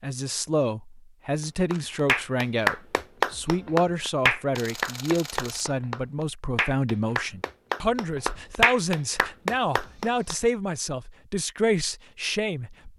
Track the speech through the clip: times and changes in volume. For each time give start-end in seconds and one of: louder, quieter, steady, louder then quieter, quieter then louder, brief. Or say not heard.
0.0-12.9 steady.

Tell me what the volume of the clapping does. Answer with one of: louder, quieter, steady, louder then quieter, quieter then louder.
quieter then louder.